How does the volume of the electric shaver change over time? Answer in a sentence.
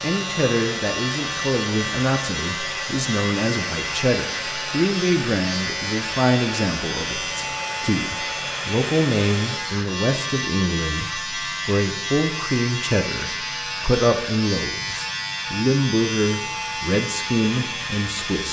The loudness of the electric shaver stays about the same.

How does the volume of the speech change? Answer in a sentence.
The loudness of the speech stays about the same.